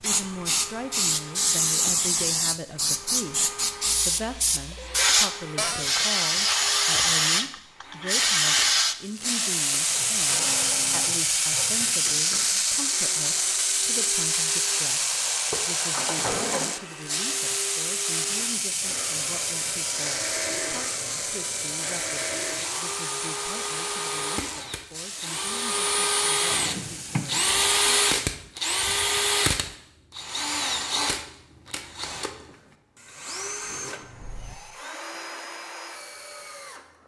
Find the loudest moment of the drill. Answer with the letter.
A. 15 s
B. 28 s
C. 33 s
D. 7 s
B.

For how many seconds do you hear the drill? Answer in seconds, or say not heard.
37 s.